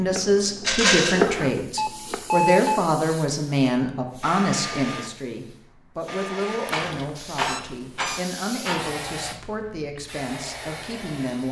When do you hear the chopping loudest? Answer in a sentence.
The volume of the chopping peaks at 1 second.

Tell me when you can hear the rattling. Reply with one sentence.
The rattling can be heard from 0.6 to 1.2 s and from 6.7 to 8.8 s.